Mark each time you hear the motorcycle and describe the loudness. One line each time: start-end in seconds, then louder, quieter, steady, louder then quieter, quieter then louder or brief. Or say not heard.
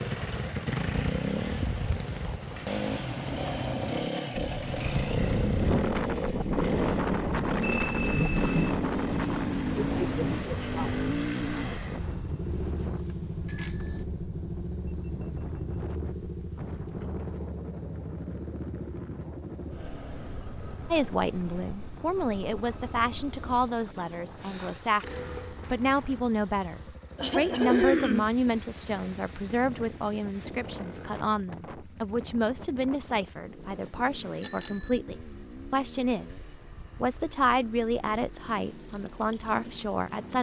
0.0-40.3 quieter.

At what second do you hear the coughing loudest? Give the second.
28 s.